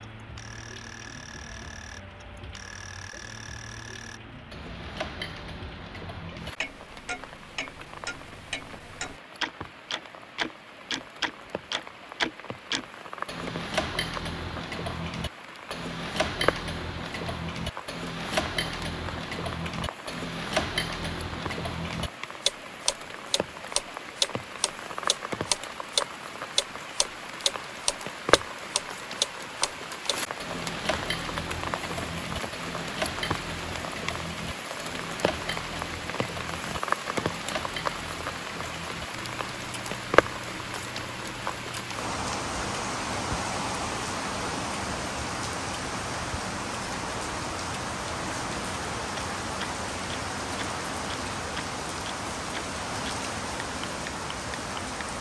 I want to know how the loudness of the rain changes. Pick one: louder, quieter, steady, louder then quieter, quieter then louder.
louder.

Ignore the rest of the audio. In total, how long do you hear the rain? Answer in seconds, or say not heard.
55 s.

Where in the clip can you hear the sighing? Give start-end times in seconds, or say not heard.
not heard.